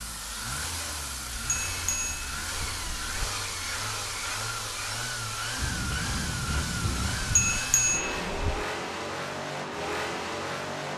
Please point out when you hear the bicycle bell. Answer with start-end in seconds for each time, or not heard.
1.4-3.3, 7.3-8.7.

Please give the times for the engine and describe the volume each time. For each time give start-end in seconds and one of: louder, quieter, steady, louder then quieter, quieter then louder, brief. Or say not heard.
0.0-10.9 steady.